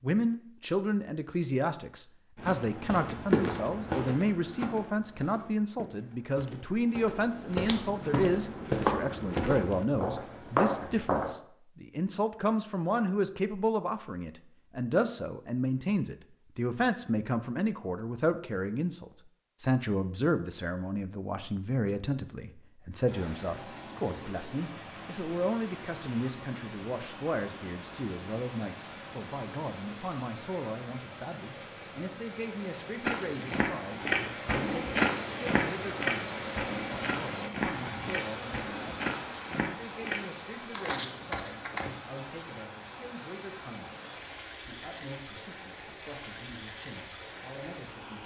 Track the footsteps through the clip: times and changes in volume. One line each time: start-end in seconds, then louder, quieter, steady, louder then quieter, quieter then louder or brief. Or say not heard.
2.4-11.3 quieter then louder
33.0-42.0 quieter.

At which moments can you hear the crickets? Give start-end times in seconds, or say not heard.
not heard.